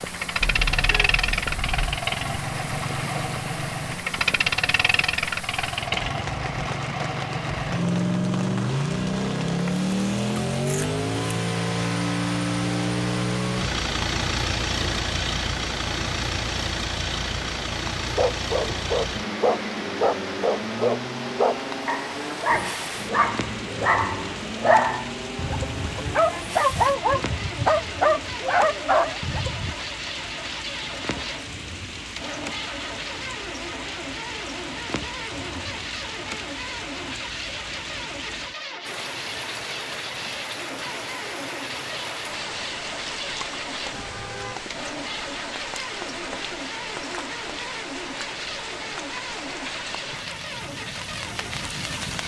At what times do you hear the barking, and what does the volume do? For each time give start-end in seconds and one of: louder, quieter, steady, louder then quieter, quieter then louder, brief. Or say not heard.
18.1-29.8 steady.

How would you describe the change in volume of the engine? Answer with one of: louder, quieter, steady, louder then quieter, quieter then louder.
quieter.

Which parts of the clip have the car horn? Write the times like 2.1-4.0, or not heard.
0.4-2.0, 43.9-44.6.